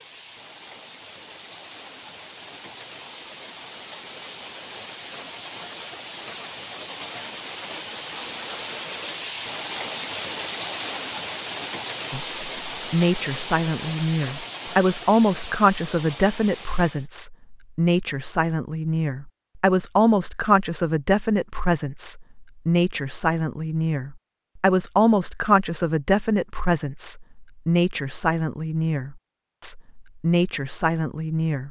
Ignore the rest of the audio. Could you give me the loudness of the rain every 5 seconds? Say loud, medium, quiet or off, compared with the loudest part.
medium, loud, loud, medium, off, off, off.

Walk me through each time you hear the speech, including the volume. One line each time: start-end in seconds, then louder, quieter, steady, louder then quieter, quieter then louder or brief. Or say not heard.
12.1-31.6 steady.